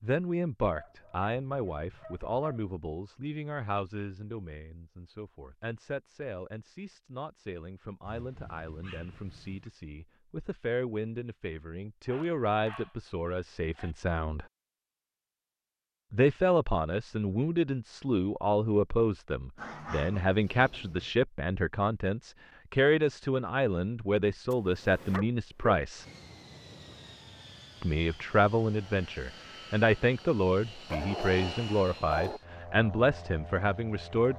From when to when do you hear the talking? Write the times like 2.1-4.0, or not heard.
0.0-14.4, 16.1-26.1, 27.8-34.3.